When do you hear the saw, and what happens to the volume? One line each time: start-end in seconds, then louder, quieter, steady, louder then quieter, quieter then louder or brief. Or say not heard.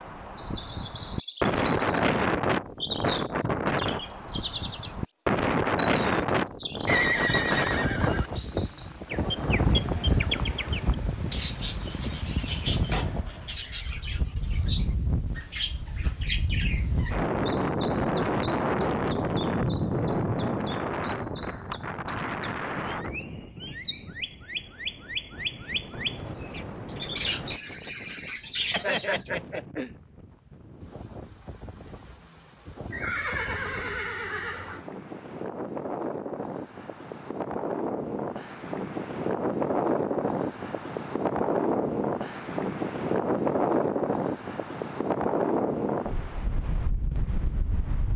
not heard.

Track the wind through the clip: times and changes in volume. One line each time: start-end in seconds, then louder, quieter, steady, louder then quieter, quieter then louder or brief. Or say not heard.
0.0-48.1 quieter then louder.